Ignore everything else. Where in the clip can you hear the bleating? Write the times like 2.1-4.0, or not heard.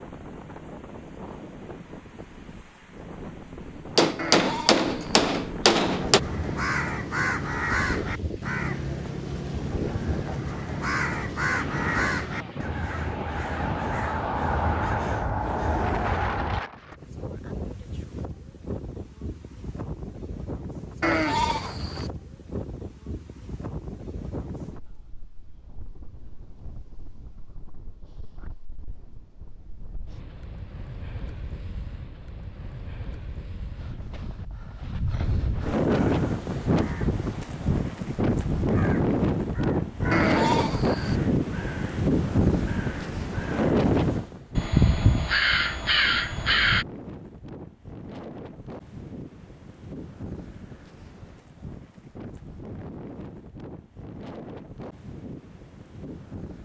4.2-5.2, 21.0-22.1, 40.1-41.2.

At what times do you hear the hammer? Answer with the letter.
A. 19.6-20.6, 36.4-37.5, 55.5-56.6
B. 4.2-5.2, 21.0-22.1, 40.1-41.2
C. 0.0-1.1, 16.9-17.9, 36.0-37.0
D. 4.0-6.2
D.